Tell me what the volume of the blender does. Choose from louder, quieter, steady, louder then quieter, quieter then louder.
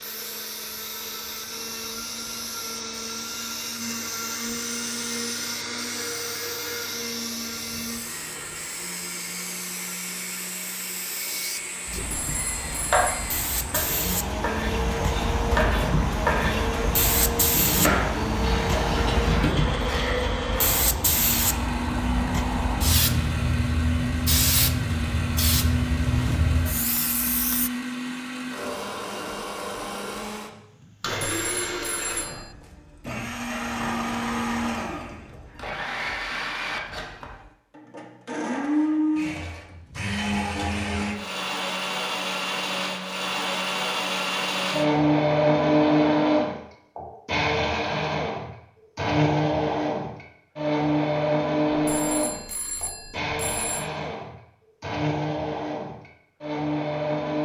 louder.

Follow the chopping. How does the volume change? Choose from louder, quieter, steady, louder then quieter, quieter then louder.
louder.